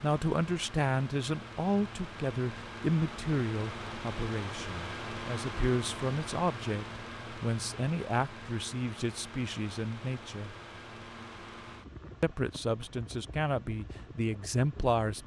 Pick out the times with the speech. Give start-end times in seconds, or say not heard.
0.0-10.5, 12.2-15.2.